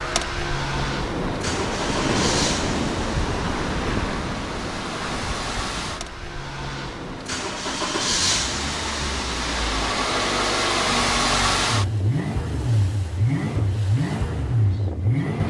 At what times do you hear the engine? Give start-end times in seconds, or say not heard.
0.0-15.4.